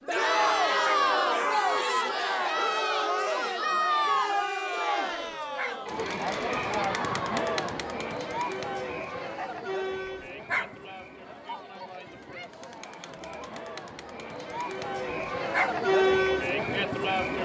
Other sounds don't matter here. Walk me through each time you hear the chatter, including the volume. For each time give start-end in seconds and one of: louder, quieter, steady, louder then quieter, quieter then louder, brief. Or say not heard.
0.1-17.3 quieter then louder.